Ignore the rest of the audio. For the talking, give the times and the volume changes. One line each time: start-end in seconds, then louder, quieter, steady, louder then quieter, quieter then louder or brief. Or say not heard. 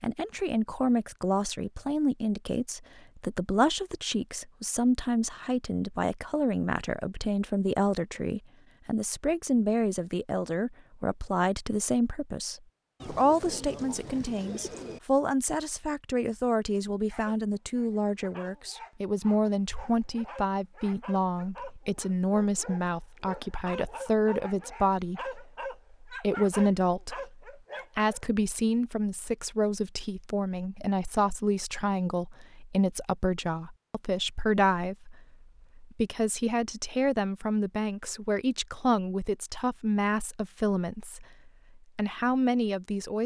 0.0-43.2 steady.